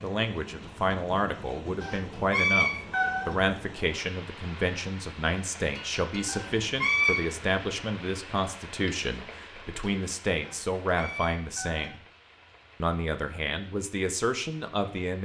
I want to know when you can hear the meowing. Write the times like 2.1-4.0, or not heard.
1.8-3.4, 6.2-7.2, 10.4-11.9.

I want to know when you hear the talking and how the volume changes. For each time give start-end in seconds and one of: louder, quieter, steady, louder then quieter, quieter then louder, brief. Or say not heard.
0.0-12.0 steady
12.8-15.2 brief.